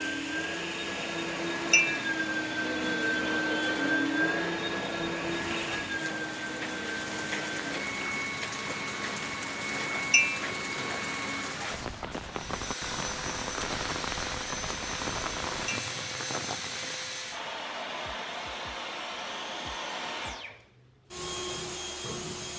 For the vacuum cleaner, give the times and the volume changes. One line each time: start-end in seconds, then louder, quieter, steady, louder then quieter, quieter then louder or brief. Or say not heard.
0.0-22.5 quieter.